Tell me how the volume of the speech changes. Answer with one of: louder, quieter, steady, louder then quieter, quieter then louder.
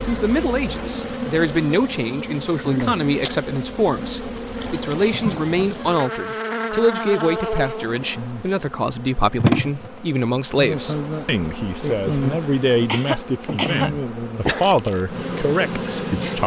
steady.